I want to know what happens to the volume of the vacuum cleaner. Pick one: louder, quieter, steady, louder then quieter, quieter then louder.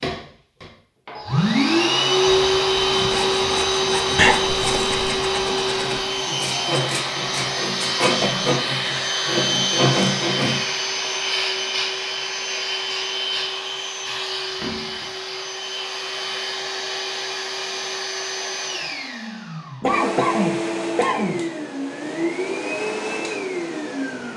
quieter.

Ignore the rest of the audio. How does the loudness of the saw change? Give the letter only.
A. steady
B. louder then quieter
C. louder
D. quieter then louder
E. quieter
C.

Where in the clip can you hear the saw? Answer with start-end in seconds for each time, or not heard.
2.9-10.6.